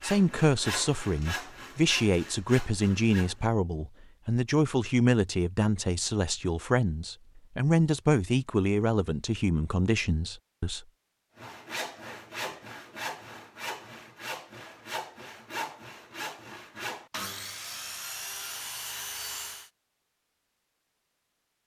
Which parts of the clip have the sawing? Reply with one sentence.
The sawing can be heard from 0.0 to 3.5 s and from 11.3 to 19.7 s.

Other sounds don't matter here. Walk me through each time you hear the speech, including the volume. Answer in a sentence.
The speech can be heard from 0.0 to 10.8 s, at a steady volume.